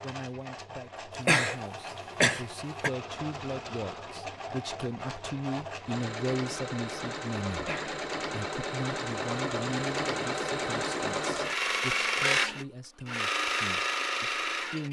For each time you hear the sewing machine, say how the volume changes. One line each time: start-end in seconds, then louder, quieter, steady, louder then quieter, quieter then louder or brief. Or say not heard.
0.0-14.8 louder.